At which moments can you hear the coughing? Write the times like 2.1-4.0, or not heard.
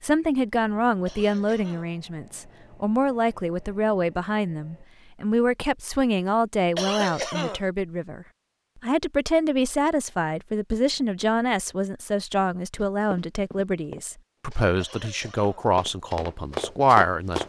1.1-1.9, 6.8-7.7, 14.8-15.7.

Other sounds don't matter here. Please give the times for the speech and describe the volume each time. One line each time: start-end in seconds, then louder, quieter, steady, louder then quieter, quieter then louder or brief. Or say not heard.
0.0-17.4 steady.